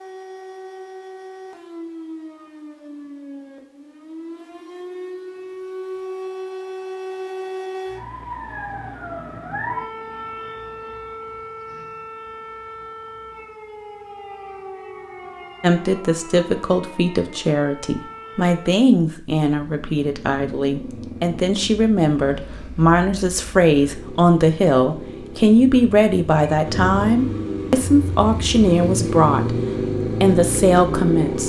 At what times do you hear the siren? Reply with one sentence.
You can hear the siren from 0.0 to 18.8 s.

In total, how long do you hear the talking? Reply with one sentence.
You can hear the talking for 15 seconds altogether.